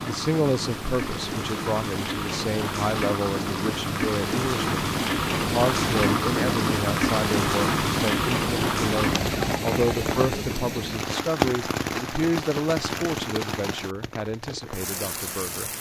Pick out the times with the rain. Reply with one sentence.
The rain can be heard from 0.0 to 15.7 s.